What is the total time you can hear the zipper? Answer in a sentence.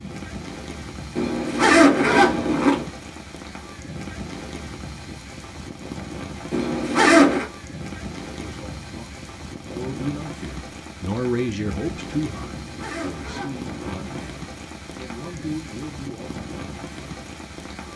You can hear the zipper for 5 seconds altogether.